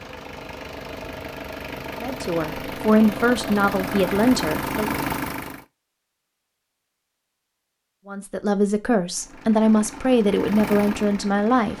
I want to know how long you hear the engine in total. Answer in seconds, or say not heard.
8 s.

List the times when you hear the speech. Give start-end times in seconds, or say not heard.
2.0-5.0, 8.1-11.7.